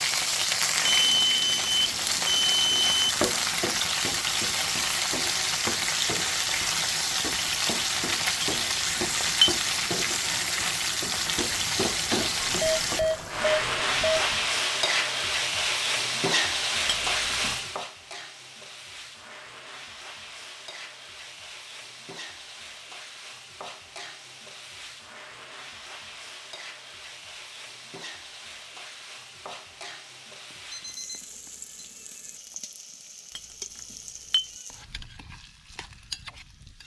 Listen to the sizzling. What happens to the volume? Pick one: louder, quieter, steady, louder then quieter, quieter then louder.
quieter.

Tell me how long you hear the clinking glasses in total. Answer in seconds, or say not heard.
3 s.